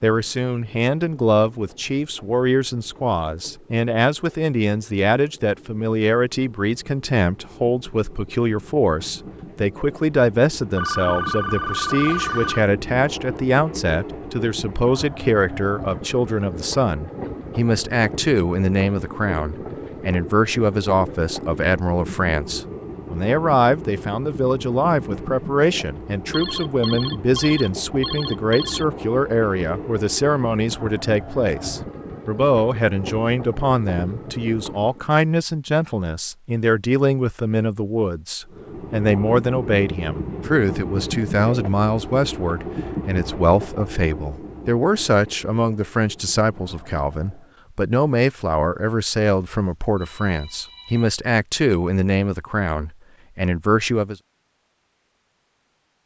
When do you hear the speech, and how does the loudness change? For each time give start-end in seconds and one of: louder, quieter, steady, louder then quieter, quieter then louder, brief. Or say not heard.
0.0-54.1 steady.